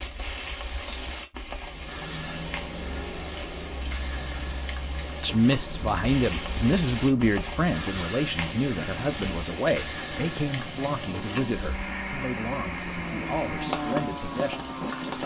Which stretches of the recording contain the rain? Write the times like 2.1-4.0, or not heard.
0.0-15.2.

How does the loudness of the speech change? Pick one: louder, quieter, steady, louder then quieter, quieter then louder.
quieter.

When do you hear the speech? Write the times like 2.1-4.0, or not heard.
5.2-15.2.